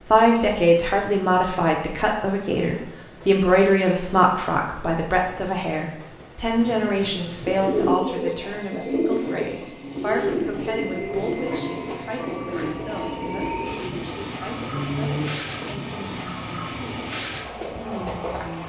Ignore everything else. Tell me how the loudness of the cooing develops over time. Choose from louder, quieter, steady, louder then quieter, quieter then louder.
quieter.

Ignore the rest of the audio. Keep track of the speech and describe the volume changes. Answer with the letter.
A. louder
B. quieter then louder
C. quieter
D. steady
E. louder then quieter
C.